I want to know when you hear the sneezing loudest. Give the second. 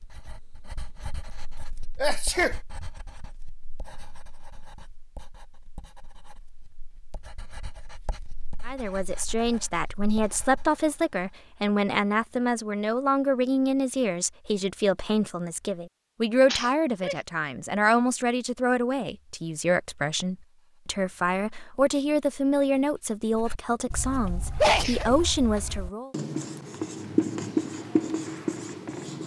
25 s.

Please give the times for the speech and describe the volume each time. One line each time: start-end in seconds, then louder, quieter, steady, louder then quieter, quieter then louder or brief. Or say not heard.
8.7-26.1 steady.